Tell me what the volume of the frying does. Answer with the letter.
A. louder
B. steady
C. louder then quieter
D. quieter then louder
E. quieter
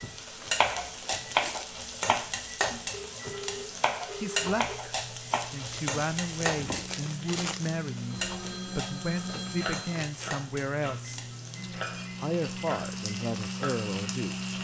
E.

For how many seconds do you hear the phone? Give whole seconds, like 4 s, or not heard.
4 s.